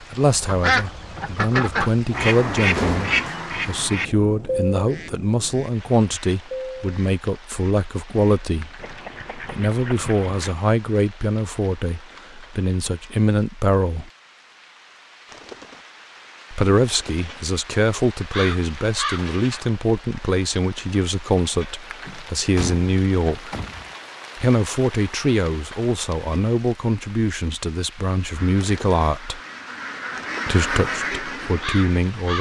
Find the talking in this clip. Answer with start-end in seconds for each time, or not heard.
0.0-14.1, 16.5-23.5, 24.4-29.4, 30.4-32.3.